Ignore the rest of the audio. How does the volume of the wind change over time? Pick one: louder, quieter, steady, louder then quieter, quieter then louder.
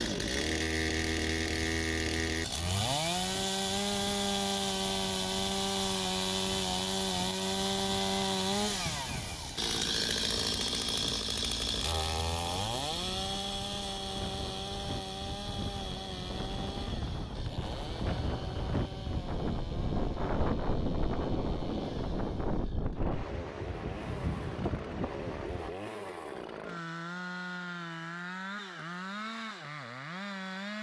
louder.